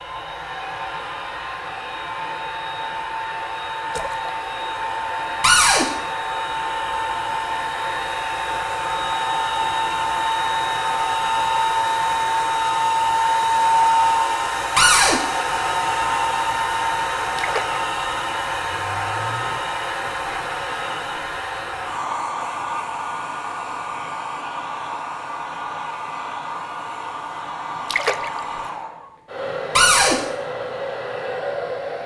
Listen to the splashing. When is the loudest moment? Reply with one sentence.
The loudest moment of the splashing is at 28 seconds.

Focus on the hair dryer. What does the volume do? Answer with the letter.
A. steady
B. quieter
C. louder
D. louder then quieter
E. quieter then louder
D.